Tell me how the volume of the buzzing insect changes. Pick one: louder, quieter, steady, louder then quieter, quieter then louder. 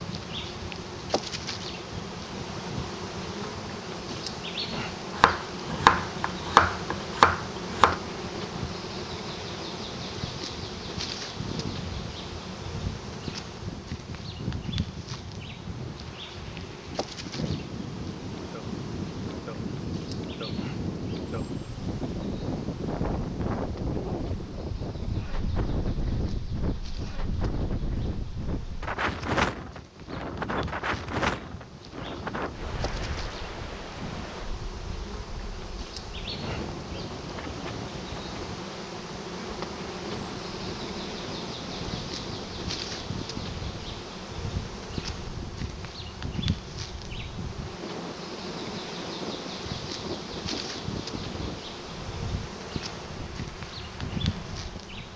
quieter then louder.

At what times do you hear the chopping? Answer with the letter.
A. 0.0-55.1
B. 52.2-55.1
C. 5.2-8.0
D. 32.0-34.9
C.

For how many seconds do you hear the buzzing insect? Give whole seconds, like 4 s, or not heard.
55 s.